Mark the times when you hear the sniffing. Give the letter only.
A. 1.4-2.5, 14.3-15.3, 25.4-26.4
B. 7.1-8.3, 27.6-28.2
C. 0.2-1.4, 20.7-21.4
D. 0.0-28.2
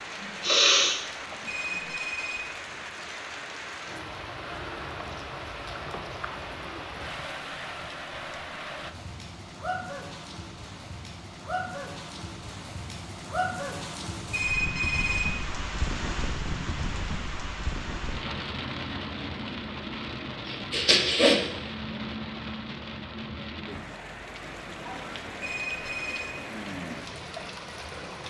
C.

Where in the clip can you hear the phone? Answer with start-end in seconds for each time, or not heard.
1.4-2.5, 14.3-15.3, 25.4-26.4.